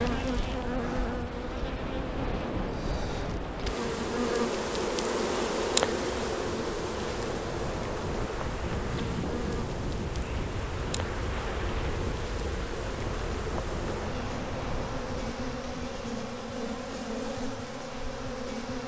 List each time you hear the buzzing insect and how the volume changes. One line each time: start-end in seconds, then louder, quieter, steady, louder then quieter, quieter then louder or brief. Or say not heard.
0.0-18.8 louder then quieter.